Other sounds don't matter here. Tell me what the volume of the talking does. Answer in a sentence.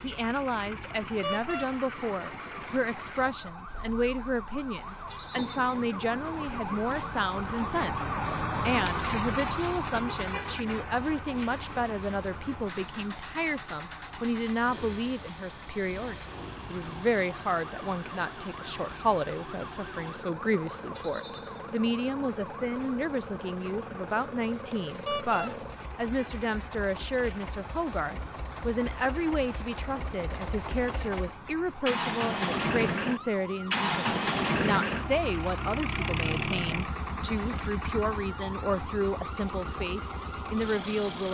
The volume of the talking stays about the same.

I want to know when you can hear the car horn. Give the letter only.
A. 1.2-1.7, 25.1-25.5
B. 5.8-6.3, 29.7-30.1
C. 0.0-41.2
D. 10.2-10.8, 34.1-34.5
A.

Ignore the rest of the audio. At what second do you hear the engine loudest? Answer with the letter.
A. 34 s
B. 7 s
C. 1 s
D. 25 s
A.